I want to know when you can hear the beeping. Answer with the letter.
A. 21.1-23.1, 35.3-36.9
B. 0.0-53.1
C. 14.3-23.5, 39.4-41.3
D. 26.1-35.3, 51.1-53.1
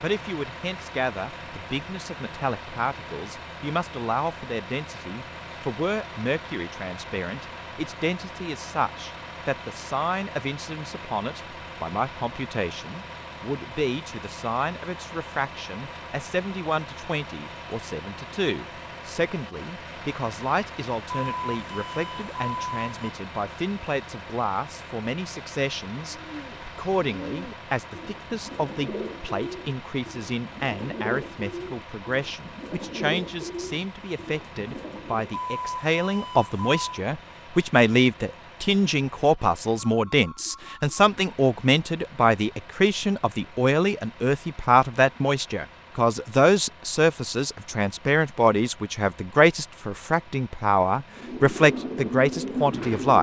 A.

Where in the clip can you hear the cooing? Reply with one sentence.
You can hear the cooing from 26.1 to 35.3 s and from 51.1 to 53.1 s.